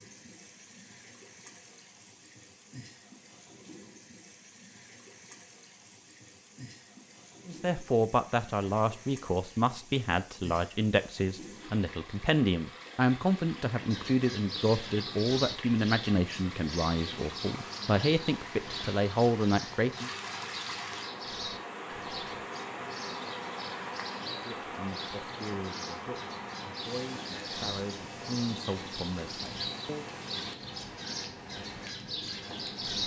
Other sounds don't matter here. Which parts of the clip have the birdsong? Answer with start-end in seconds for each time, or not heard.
13.8-33.0.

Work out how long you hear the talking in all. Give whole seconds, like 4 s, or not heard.
18 s.